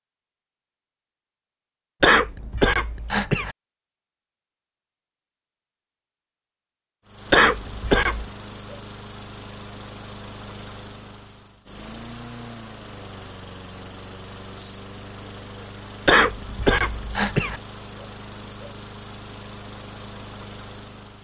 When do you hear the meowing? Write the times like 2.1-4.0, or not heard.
not heard.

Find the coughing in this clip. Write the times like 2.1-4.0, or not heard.
2.0-3.5, 7.3-8.3, 16.1-17.6.